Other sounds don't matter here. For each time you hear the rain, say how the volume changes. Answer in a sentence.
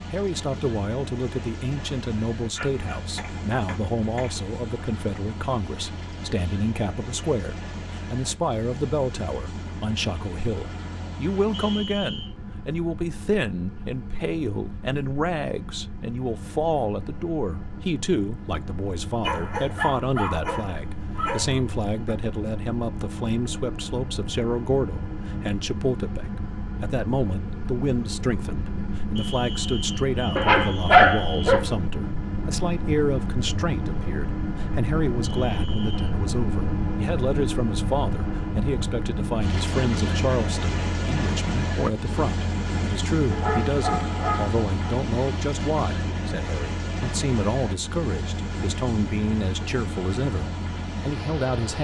You can't hear the rain here.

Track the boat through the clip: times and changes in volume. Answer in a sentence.
The boat can be heard from 0.0 to 51.7 s, getting louder.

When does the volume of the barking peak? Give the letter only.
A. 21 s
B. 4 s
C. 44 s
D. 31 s
D.